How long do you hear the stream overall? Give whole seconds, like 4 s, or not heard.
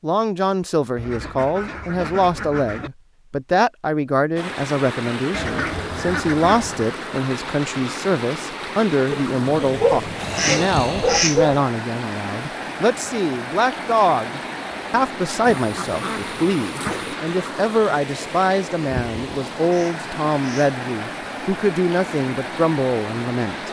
19 s.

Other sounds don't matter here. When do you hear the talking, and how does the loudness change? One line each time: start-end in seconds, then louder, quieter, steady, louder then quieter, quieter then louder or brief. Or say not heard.
0.0-23.6 steady.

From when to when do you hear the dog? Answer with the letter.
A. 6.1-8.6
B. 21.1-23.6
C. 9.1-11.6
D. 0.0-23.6
C.